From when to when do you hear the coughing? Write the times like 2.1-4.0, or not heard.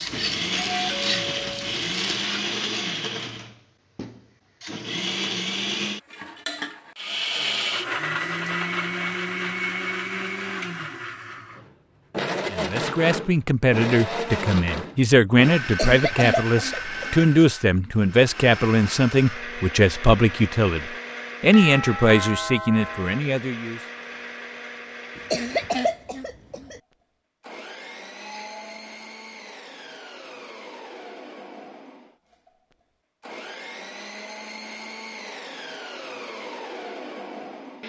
15.6-17.3, 25.1-26.8.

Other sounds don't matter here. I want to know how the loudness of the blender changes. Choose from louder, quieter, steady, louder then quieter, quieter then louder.
quieter.